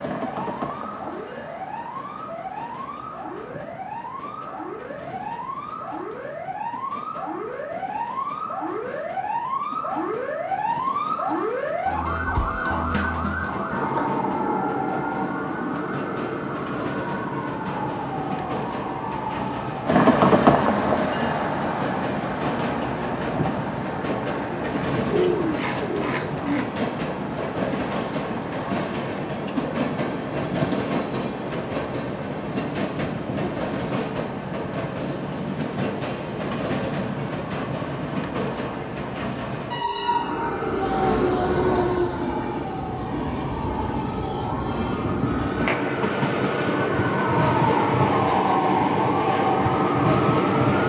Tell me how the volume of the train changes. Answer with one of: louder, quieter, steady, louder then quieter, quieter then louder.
louder.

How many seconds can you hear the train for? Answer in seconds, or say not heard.
51 s.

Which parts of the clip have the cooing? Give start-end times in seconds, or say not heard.
25.1-26.6.